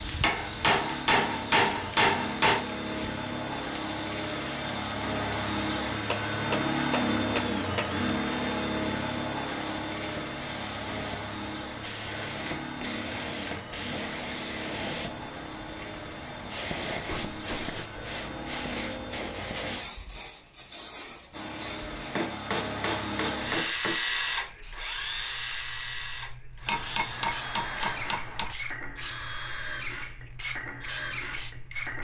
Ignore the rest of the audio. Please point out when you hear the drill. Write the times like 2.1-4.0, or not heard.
0.0-19.8, 21.3-31.9.